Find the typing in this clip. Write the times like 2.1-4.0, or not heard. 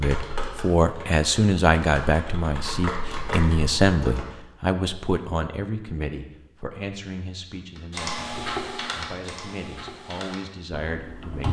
0.0-4.3, 7.8-11.4.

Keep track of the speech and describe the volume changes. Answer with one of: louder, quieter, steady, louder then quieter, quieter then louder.
quieter.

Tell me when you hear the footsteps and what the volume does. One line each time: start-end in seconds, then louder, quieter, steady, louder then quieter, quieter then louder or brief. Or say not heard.
not heard.